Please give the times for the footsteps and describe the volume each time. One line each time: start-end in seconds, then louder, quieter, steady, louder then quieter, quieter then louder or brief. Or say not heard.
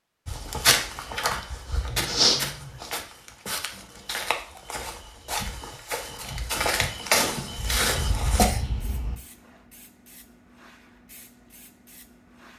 0.2-8.4 quieter then louder.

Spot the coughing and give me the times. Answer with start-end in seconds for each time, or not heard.
7.5-9.2.